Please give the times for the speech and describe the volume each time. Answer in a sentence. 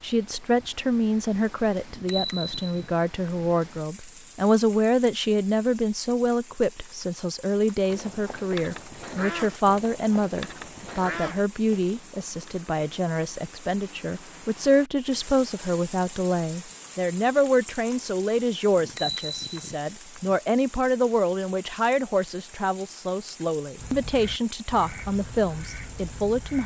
The speech can be heard from 0.0 to 26.6 s, at a steady volume.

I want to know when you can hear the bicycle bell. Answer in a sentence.
You can hear the bicycle bell from 1.9 to 3.3 s and from 18.8 to 20.4 s.